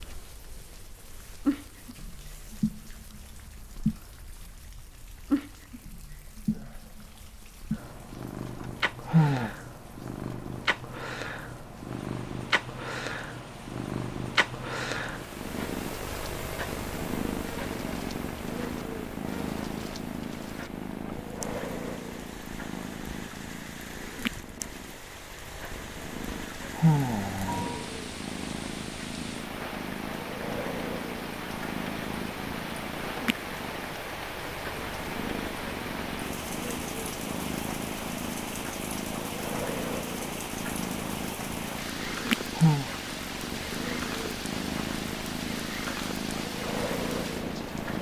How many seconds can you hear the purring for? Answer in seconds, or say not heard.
48 s.